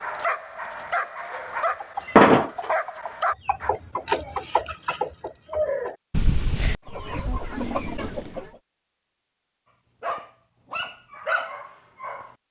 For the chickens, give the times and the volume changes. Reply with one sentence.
The chickens can be heard from 1.8 to 8.5 s, getting quieter.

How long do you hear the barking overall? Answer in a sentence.
You can hear the barking for 6 seconds altogether.